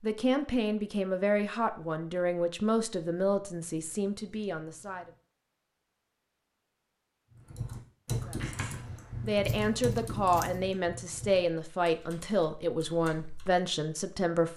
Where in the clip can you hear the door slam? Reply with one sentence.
You can hear the door slam from 8.3 to 9.0 s.